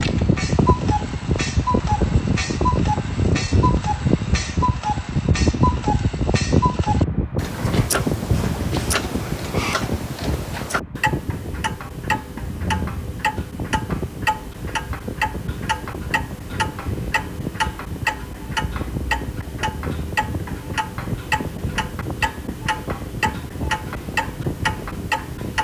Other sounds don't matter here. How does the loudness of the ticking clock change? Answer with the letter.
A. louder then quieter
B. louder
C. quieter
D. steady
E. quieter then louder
D.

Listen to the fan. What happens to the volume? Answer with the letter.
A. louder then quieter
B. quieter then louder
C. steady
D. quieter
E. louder
D.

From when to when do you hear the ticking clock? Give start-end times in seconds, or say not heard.
0.0-25.5.